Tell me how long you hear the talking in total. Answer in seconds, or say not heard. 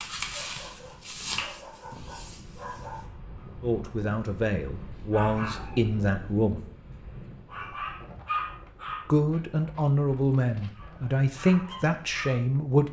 7 s.